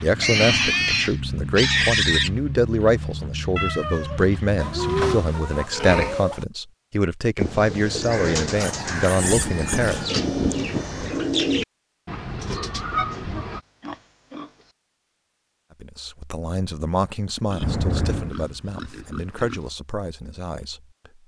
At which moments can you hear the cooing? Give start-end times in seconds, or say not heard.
7.3-13.6.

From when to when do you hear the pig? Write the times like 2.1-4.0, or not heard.
0.2-2.3, 4.5-6.5, 8.6-10.1, 12.8-14.7, 17.5-19.8.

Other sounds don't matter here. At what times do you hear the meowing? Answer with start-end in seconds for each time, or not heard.
3.5-5.2, 9.2-10.9, 17.6-18.4.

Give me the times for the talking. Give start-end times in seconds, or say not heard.
0.0-10.1, 15.8-21.2.